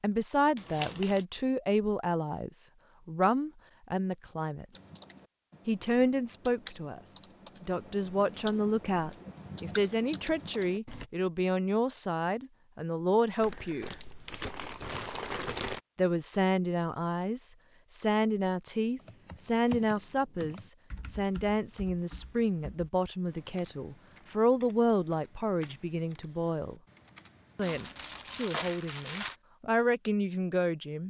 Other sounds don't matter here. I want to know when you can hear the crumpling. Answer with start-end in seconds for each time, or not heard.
0.6-1.2, 13.4-15.8, 27.6-29.4.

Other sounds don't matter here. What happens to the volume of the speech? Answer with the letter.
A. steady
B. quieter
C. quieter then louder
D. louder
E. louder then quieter
A.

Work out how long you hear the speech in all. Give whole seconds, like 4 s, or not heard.
27 s.